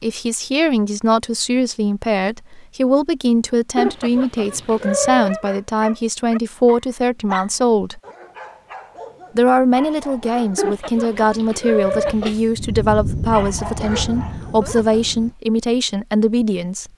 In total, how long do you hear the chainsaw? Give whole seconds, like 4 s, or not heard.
not heard.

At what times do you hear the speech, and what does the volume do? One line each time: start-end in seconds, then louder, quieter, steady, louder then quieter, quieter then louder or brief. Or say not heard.
0.0-8.0 steady
9.3-16.9 steady.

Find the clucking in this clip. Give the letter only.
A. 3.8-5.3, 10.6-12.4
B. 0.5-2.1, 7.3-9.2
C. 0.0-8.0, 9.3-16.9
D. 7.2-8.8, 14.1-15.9
A.